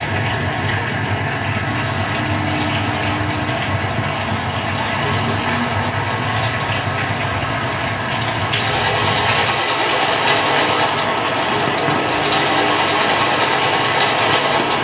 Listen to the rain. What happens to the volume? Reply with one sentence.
The volume of the rain stays about the same.